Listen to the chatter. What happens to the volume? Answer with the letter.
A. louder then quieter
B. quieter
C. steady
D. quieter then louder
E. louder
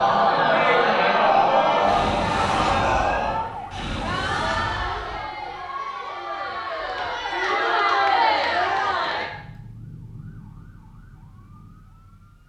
D.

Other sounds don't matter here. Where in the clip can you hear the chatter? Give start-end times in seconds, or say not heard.
0.0-9.3.